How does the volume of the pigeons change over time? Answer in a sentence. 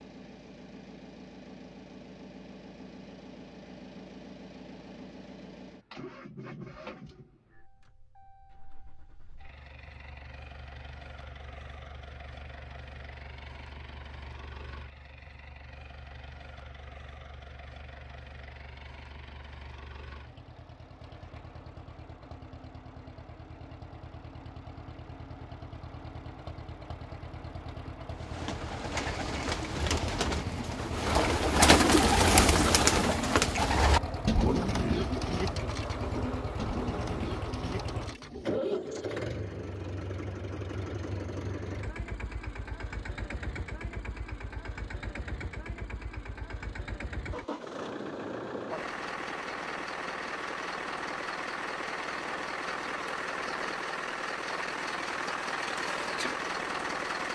The loudness of the pigeons goes up, then down.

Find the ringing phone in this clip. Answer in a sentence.
You can't hear the ringing phone here.